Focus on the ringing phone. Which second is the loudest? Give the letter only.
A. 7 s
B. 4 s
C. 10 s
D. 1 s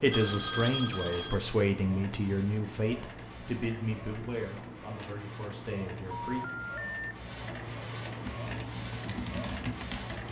D.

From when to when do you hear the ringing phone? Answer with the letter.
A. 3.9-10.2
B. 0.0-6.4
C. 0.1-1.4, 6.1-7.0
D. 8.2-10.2
C.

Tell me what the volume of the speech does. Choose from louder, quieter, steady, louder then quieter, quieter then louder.
quieter.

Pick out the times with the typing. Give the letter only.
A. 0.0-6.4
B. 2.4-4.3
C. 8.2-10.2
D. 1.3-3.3
C.